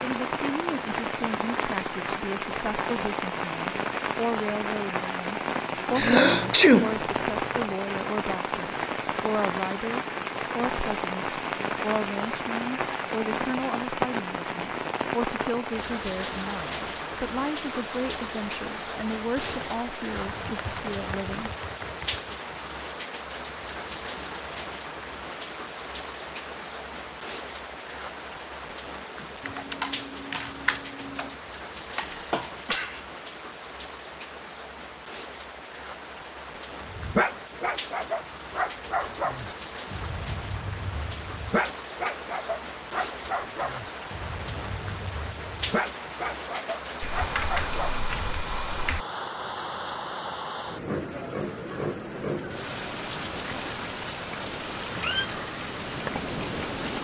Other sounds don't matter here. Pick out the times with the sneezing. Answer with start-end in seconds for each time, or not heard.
6.0-7.0, 31.9-33.0.